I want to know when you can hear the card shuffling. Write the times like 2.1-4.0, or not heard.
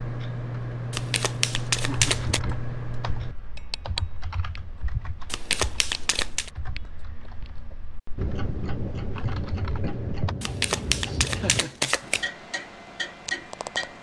0.9-2.4, 5.3-6.5, 10.4-12.3.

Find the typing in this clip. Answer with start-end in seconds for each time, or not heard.
1.8-10.3.